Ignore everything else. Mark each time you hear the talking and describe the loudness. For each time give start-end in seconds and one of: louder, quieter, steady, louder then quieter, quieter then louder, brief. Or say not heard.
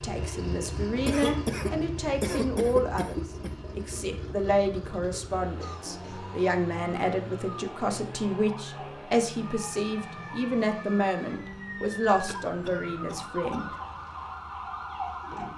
0.0-13.7 steady.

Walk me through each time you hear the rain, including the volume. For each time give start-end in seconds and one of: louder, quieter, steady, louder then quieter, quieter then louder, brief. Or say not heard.
not heard.